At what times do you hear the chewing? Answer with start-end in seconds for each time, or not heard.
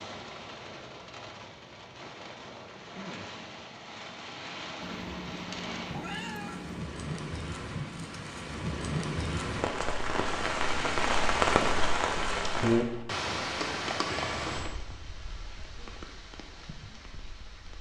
not heard.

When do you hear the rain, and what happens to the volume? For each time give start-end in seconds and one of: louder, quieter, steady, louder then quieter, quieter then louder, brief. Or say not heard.
0.0-17.7 louder then quieter.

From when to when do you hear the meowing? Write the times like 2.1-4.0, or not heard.
4.8-6.8, 14.1-14.8.